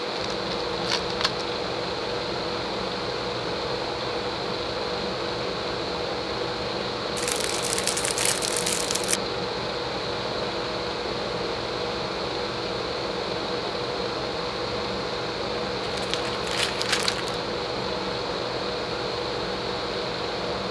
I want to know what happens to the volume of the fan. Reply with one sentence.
The volume of the fan stays about the same.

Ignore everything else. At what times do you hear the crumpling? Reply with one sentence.
You can hear the crumpling from 0.3 to 1.5 s, from 7.2 to 9.2 s and from 15.8 to 17.4 s.